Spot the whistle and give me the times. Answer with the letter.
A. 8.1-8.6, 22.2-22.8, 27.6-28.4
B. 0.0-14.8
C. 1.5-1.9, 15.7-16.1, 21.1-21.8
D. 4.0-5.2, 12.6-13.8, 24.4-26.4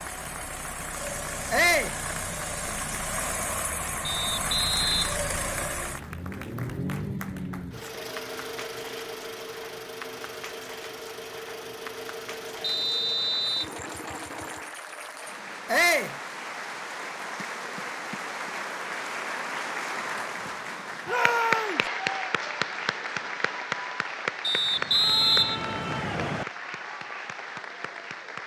D.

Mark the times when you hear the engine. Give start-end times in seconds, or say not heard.
0.0-14.8.